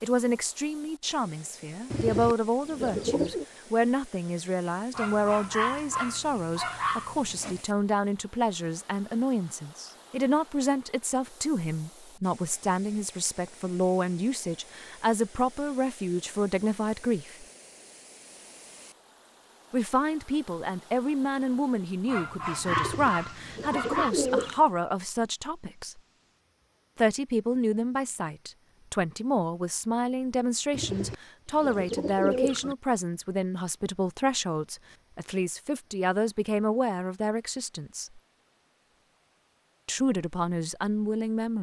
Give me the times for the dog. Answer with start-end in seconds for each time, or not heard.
4.9-7.6, 22.1-24.1.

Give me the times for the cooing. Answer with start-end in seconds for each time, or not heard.
1.9-3.5, 22.6-24.6, 30.7-32.8.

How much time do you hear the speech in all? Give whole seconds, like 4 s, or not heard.
37 s.